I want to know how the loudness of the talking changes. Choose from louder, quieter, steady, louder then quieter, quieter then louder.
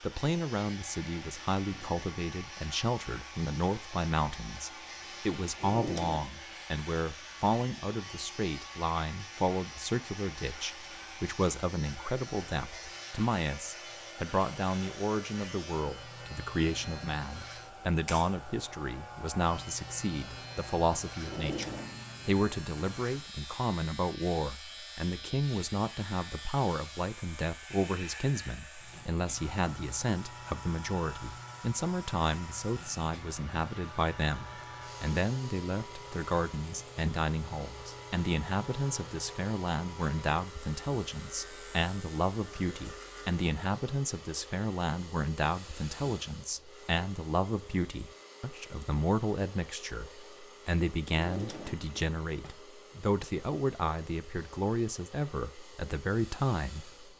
steady.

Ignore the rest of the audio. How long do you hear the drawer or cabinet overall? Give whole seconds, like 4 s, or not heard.
3 s.